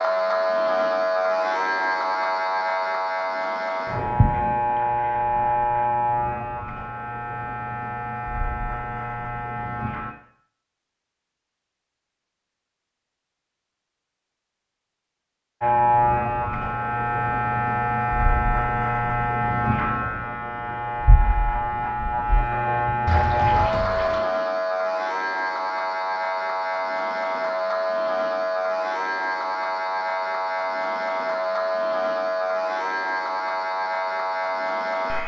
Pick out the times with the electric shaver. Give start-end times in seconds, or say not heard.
0.0-10.2, 15.6-35.2.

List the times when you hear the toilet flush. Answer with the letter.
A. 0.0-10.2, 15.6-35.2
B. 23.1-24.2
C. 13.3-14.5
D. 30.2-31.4
B.